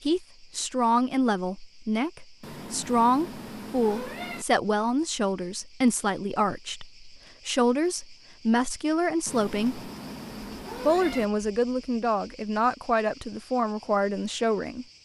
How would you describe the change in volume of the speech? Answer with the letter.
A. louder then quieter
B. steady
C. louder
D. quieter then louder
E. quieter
B.